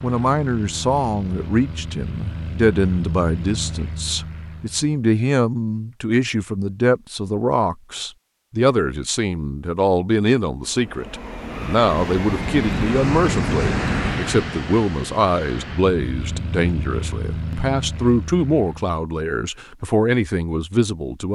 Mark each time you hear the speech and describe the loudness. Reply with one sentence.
You can hear the speech from 0.0 to 21.3 s, at a steady volume.